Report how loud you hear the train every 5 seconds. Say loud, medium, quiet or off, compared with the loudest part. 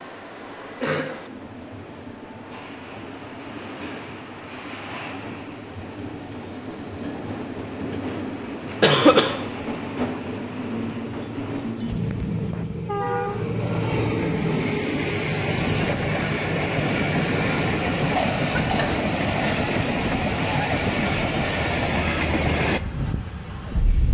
quiet, medium, loud, loud, loud.